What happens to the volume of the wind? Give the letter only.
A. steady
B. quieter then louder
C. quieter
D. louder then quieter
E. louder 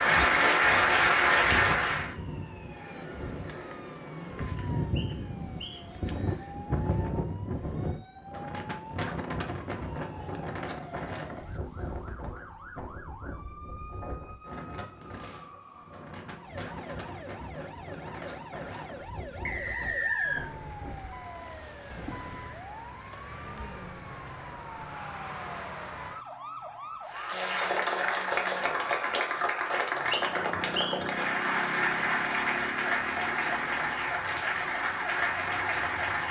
D.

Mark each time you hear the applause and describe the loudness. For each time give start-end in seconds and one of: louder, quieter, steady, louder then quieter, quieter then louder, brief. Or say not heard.
0.0-2.1 brief
27.1-36.2 steady.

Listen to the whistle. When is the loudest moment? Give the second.
20 s.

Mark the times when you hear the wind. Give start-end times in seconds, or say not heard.
0.0-21.2.